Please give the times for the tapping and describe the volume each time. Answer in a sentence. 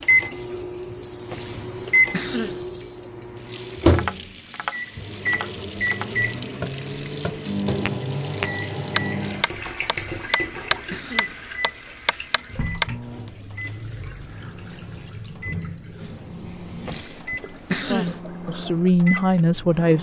The tapping can be heard from 1.4 to 12.9 s, getting louder.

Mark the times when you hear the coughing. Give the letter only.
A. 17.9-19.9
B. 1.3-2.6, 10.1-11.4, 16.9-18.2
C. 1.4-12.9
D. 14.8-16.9
B.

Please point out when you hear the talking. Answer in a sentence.
The talking can be heard from 17.9 to 19.9 s.